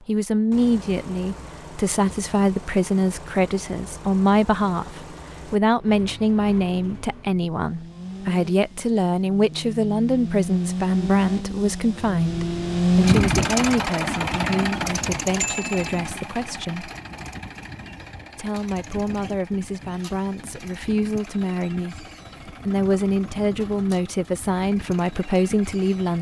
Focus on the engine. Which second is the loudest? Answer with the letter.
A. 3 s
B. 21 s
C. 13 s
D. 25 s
C.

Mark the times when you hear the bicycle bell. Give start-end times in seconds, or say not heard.
15.3-16.0.